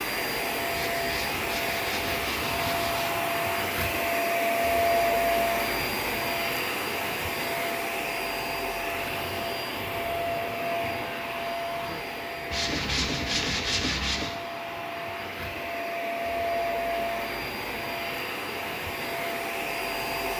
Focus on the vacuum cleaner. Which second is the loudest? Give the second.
5 s.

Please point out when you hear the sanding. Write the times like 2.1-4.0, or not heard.
0.7-3.1, 12.5-14.3.